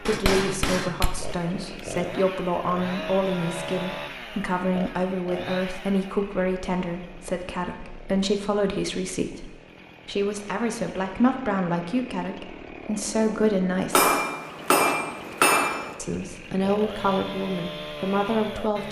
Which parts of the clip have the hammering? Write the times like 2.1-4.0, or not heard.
0.1-1.4, 13.9-15.9.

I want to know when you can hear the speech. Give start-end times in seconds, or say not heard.
0.0-14.1, 15.9-18.8.